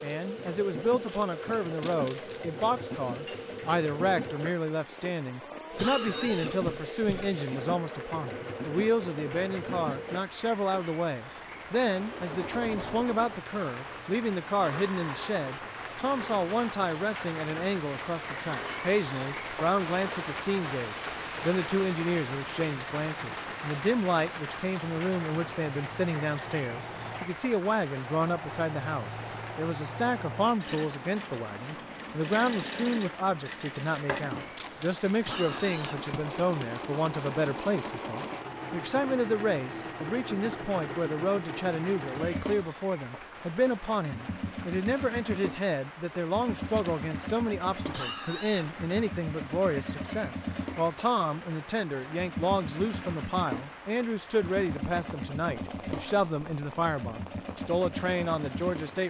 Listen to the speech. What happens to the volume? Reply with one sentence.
The volume of the speech stays about the same.